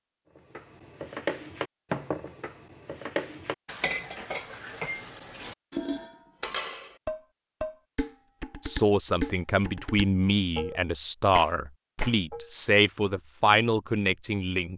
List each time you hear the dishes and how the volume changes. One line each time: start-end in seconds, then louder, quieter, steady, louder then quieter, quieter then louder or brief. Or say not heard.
0.3-12.5 steady.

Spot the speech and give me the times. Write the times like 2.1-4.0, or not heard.
8.6-14.7.